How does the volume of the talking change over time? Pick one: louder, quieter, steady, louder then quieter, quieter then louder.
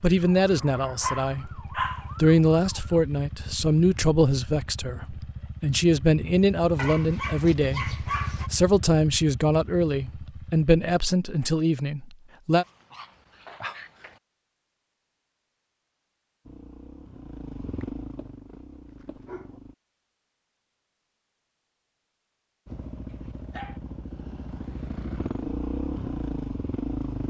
steady.